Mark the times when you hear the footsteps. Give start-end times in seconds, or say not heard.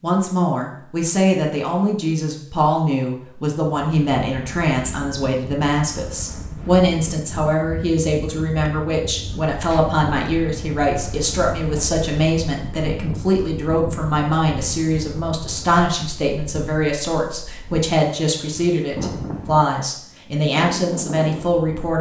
not heard.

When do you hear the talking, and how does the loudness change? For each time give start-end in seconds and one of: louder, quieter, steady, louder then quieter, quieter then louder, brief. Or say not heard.
0.0-21.9 steady.